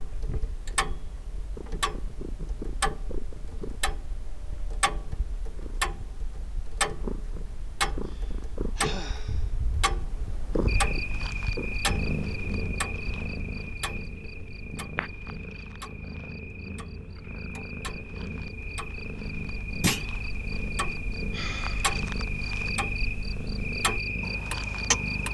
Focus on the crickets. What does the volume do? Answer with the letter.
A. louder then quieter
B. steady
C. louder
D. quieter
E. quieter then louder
E.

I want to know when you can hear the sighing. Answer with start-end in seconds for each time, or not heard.
8.1-9.5, 21.1-22.0.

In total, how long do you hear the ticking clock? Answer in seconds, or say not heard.
25 s.